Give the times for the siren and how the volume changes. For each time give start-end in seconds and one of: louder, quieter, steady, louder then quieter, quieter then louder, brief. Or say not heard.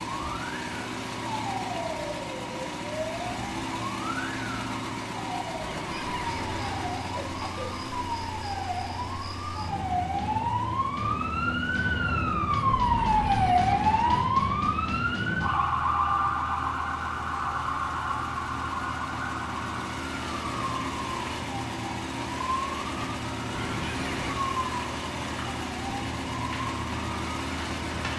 0.1-28.1 louder then quieter.